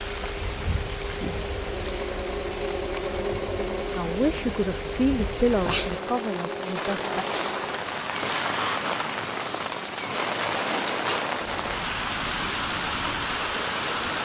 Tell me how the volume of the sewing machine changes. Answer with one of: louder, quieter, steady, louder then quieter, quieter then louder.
quieter.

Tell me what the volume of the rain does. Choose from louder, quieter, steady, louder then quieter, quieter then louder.
louder.